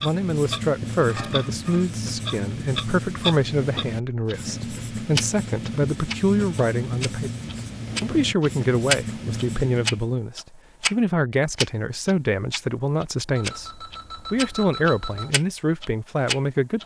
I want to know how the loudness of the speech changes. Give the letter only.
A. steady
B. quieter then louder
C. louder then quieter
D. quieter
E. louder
A.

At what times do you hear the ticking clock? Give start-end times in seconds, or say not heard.
0.0-4.3, 5.2-10.9, 11.6-16.8.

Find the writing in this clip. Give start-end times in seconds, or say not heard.
0.0-10.1.